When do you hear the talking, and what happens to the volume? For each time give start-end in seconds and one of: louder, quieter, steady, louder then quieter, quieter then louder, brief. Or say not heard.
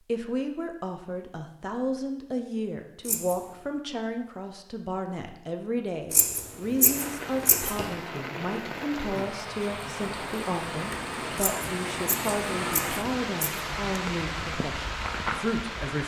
0.1-16.0 steady.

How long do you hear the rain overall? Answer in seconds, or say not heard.
9 s.